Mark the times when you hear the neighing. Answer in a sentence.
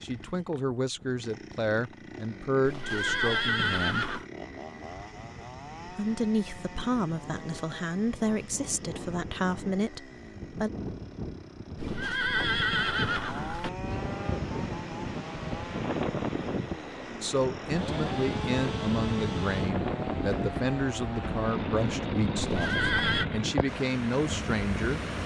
The neighing can be heard from 2.6 to 4.2 s, from 11.8 to 13.7 s and from 22.4 to 23.2 s.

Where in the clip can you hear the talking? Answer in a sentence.
You can hear the talking from 0.0 to 4.0 s, from 5.8 to 10.7 s and from 17.2 to 25.0 s.